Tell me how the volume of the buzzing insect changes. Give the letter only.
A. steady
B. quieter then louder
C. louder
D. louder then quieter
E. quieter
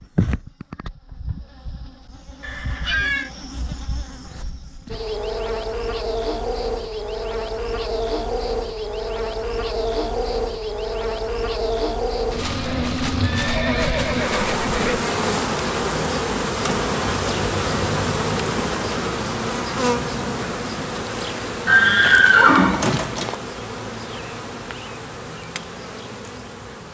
D.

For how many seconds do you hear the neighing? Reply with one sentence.
You can hear the neighing for 5 seconds altogether.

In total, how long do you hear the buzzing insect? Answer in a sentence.
The buzzing insect can be heard for 27 seconds in total.